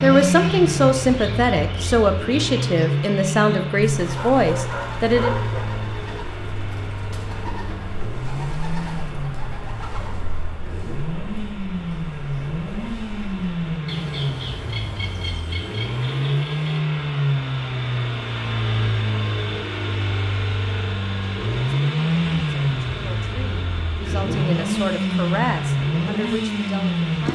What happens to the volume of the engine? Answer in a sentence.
The volume of the engine goes down, then up.